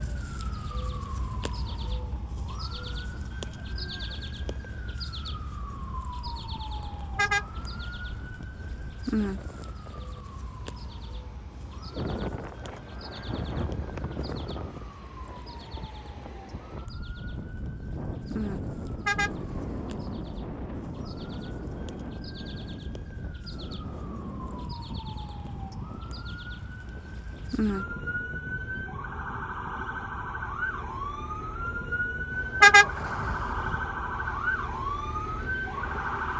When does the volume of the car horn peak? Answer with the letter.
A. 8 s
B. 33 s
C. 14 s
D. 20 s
B.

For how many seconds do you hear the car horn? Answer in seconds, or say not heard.
3 s.